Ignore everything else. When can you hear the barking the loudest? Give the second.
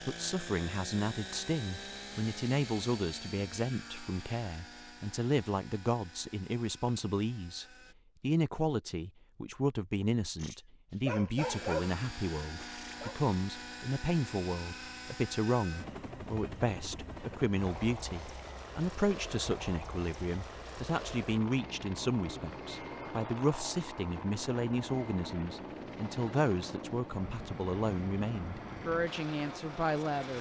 12 s.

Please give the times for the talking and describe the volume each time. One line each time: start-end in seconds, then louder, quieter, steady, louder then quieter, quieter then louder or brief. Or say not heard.
0.1-30.3 steady.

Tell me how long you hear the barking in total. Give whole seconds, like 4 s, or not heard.
3 s.